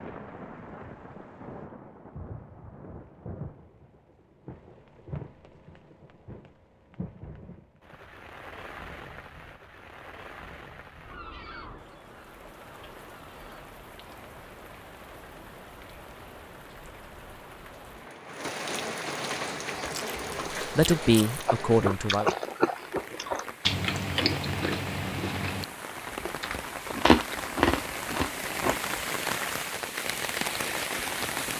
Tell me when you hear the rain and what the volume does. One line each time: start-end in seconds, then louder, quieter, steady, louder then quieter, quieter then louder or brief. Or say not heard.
0.0-31.5 louder.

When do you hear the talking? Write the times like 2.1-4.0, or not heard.
20.6-22.3.